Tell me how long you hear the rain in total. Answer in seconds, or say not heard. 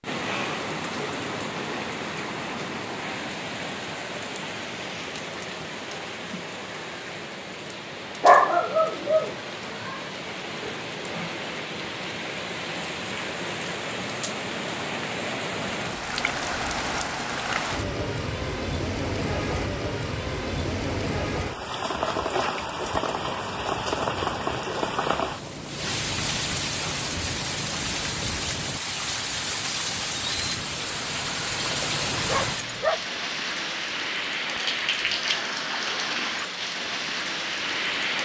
38 s.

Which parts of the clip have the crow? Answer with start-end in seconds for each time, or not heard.
not heard.